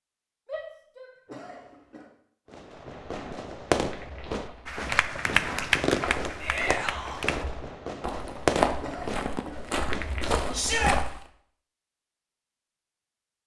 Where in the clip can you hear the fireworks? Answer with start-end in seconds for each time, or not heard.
2.5-10.4.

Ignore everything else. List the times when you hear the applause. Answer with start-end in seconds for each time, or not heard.
4.7-7.5.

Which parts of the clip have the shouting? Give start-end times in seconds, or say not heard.
0.5-1.6, 6.4-7.2, 10.5-10.9.